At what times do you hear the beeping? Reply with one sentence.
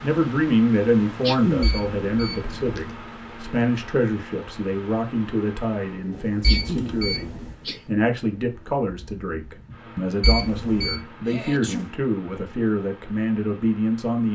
The beeping can be heard from 1.6 to 3.0 s, from 6.4 to 7.5 s and from 10.2 to 11.0 s.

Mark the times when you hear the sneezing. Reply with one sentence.
You can hear the sneezing from 0.9 to 1.7 s, from 6.2 to 7.8 s and from 11.2 to 11.9 s.